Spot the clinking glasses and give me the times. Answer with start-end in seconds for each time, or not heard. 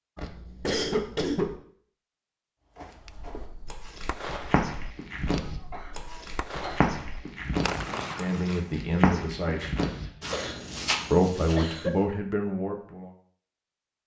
not heard.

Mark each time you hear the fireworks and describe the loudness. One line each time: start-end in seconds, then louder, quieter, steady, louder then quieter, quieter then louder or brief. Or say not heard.
3.0-8.8 quieter then louder.